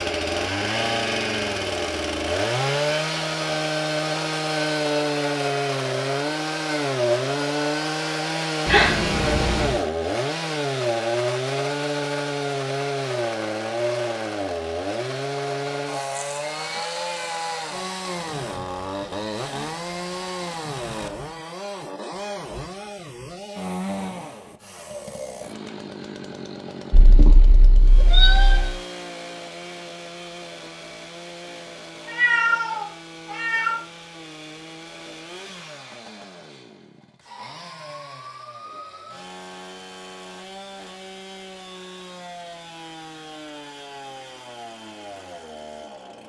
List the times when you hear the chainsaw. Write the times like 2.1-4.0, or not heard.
0.0-46.2.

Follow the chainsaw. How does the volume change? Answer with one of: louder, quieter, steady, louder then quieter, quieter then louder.
quieter.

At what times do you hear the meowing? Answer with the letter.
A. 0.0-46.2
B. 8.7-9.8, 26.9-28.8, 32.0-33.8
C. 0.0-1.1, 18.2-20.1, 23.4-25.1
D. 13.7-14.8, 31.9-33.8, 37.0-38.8
B.